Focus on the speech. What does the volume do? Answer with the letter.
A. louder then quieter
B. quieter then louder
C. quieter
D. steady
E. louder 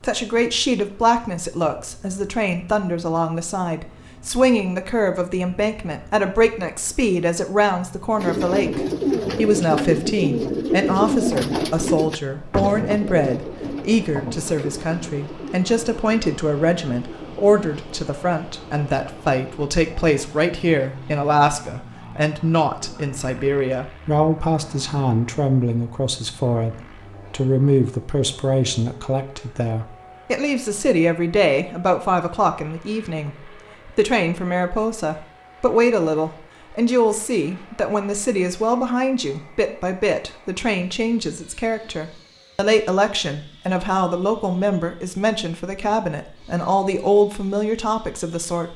D.